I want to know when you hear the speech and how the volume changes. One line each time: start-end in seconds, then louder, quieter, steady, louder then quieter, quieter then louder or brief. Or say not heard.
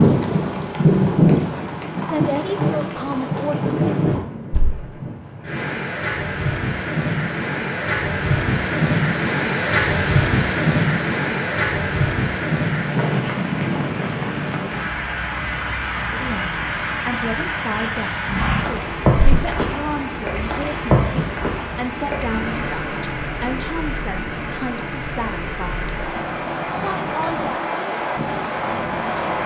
2.0-3.7 brief
16.1-25.9 steady
26.8-27.9 brief.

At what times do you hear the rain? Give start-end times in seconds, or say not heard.
0.0-29.4.